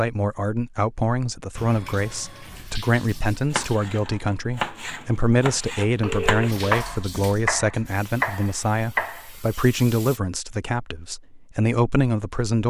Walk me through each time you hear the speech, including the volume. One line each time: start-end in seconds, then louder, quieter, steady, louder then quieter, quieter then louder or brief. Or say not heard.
0.0-12.6 steady.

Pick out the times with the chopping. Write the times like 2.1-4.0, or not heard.
3.5-9.2.